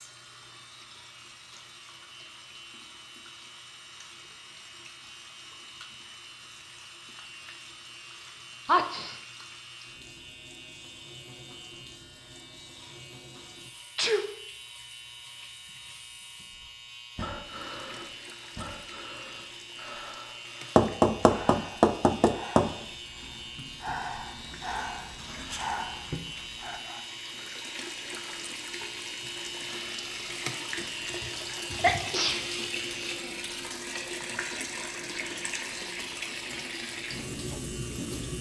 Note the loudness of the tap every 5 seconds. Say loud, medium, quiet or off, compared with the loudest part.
quiet, quiet, quiet, quiet, quiet, medium, loud, loud.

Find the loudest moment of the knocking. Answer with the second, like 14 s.
21 s.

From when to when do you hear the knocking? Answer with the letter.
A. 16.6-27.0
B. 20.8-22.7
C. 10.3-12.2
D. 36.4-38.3
B.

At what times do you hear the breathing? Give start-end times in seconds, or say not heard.
16.6-27.0.